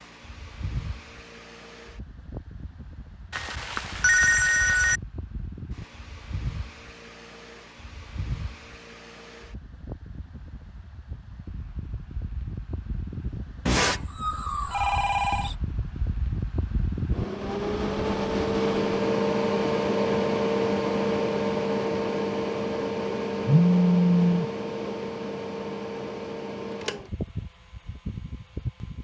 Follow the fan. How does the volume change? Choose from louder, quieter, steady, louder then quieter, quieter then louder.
louder then quieter.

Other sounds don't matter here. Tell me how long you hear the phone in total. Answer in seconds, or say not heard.
5 s.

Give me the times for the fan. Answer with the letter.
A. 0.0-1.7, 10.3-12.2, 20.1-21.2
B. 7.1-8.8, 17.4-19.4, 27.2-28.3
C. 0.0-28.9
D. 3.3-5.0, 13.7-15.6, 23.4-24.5
C.